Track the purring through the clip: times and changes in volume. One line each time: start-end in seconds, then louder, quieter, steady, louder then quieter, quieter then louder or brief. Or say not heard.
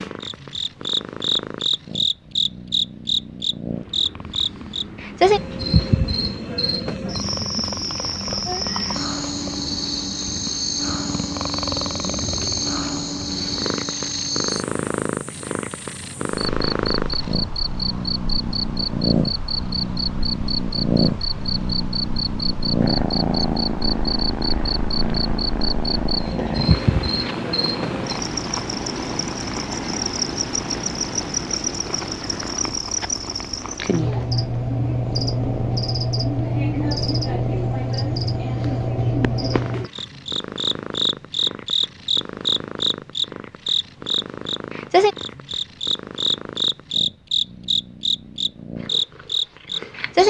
0.0-50.2 louder then quieter.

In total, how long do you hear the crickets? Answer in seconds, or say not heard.
50 s.